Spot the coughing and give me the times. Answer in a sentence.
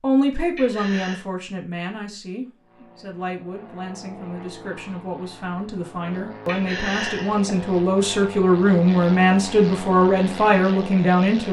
The coughing can be heard from 0.6 to 1.2 s and from 6.5 to 7.5 s.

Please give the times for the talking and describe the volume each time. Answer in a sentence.
You can hear the talking from 0.0 to 11.4 s, getting quieter then louder.